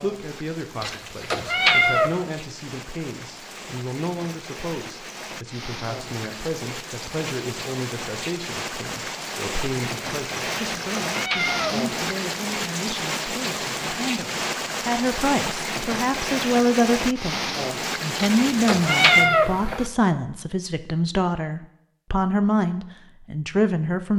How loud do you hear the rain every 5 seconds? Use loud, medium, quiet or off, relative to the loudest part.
quiet, medium, loud, loud, off.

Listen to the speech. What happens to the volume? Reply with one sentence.
The loudness of the speech goes up.